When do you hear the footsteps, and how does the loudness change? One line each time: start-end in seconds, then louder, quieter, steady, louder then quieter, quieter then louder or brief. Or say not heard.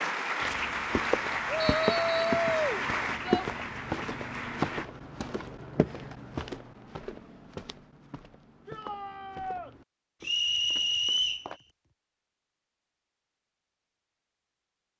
0.4-11.6 quieter.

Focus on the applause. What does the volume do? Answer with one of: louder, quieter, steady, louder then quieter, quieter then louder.
quieter.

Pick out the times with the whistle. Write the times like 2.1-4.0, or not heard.
1.6-2.4, 10.2-11.4.